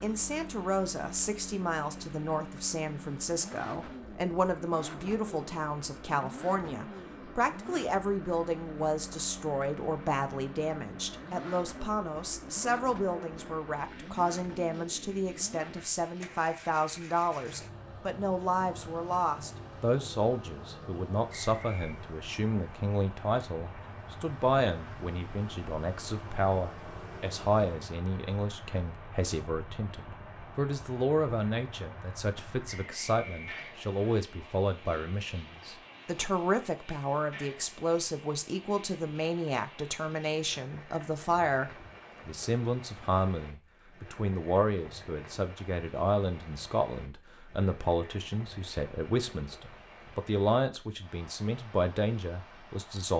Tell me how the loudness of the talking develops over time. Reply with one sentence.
The loudness of the talking stays about the same.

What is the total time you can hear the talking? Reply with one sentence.
You can hear the talking for 53 seconds altogether.